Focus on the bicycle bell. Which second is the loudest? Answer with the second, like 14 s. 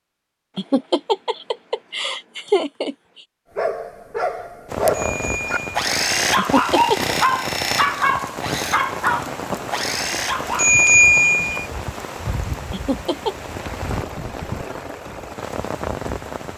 11 s.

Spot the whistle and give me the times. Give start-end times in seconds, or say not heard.
not heard.